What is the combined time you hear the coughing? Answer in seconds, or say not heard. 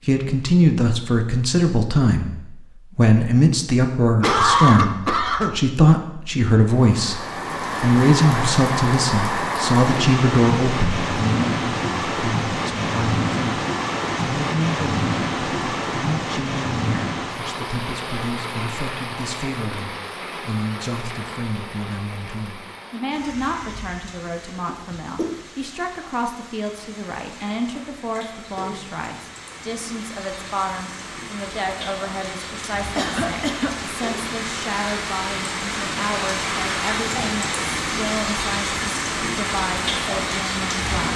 3 s.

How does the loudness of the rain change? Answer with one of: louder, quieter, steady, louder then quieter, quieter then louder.
quieter then louder.